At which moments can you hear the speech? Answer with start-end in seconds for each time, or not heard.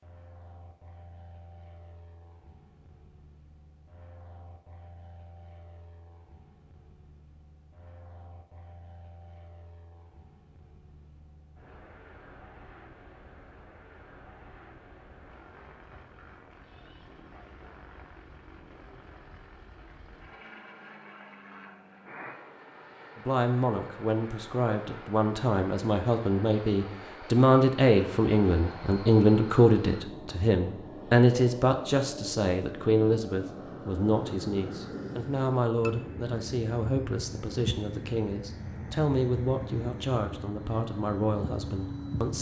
23.1-42.3.